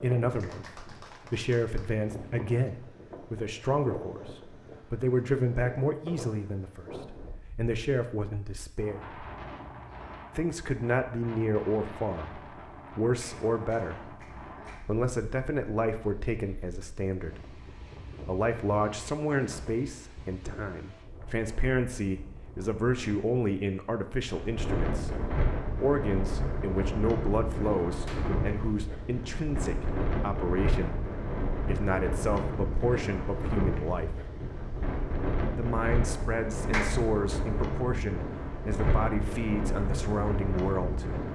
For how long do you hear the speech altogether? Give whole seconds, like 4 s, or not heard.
37 s.